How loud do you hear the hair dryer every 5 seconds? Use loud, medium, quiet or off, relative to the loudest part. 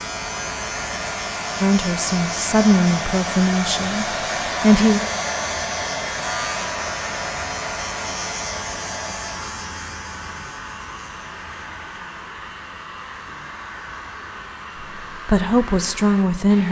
loud, loud, medium, medium.